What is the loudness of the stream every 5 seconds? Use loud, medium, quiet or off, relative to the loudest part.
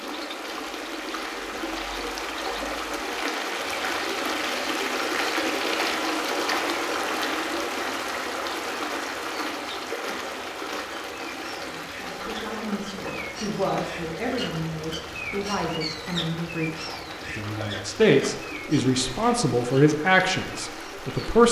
loud, loud, medium, medium, medium.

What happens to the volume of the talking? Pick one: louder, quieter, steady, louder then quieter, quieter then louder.
louder.